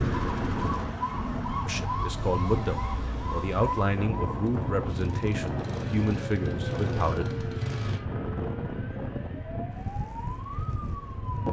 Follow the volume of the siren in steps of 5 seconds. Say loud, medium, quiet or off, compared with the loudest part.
loud, medium, medium.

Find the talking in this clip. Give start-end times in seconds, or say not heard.
1.6-7.3.